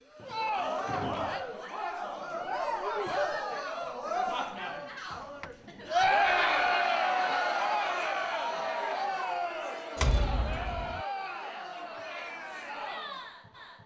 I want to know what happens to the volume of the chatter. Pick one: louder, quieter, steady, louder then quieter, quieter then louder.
louder then quieter.